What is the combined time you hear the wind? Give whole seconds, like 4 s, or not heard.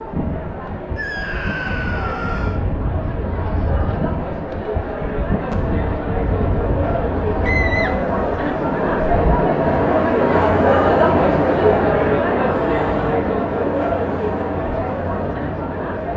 16 s.